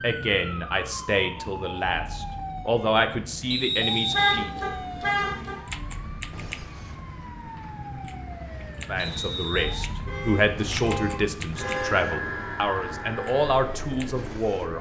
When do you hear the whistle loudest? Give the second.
4 s.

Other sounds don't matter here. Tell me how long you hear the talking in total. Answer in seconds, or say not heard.
10 s.